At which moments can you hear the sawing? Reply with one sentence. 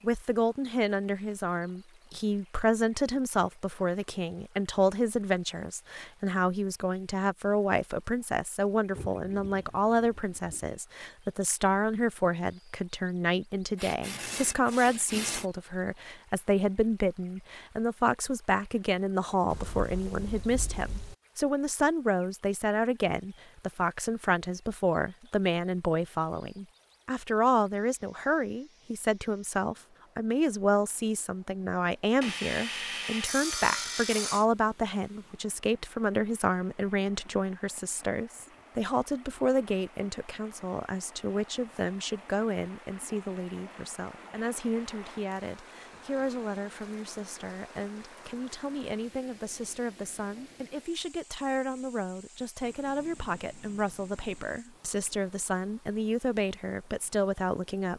You can hear the sawing from 13.8 to 15.4 s and from 32.2 to 34.5 s.